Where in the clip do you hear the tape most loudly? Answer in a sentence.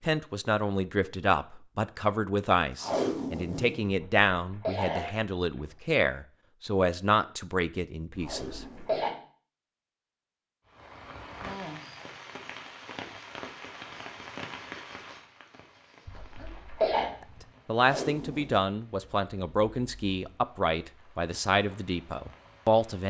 The loudest moment of the tape is at 3 seconds.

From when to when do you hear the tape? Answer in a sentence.
The tape can be heard from 2.8 to 3.9 s, from 8.2 to 9.2 s and from 17.8 to 18.6 s.